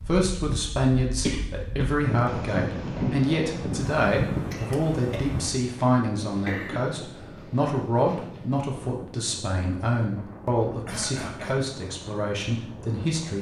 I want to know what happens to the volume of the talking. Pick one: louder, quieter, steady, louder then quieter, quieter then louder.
steady.